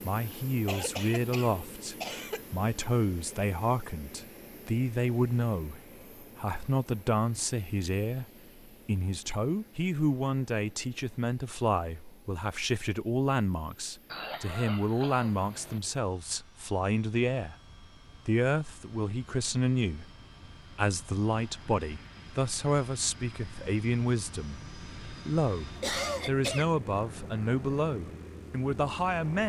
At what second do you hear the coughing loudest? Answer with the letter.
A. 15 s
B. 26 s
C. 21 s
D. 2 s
B.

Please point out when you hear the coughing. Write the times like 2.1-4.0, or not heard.
0.5-2.5, 14.1-15.8, 25.8-26.7.